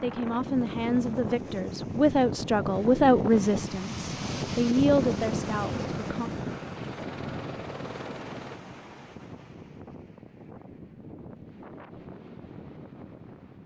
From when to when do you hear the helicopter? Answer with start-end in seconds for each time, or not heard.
5.0-8.6.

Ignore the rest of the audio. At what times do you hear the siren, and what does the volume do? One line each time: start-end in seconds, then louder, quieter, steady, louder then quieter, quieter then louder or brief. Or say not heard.
not heard.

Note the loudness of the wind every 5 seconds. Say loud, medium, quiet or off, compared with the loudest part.
loud, loud, quiet.